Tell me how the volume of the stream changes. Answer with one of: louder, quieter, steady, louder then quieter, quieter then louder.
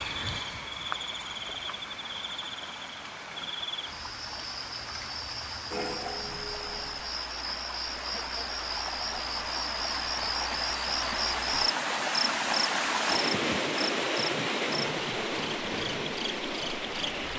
louder.